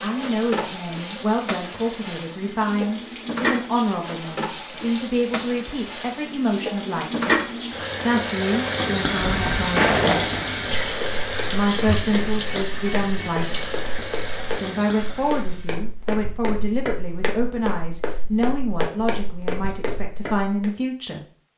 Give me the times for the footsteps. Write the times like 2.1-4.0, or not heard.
9.3-20.7.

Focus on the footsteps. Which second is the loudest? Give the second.
10 s.